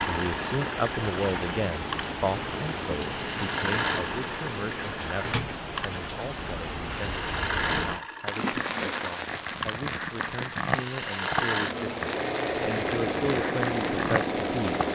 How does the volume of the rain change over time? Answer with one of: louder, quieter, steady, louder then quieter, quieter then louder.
steady.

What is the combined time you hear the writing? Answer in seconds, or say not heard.
not heard.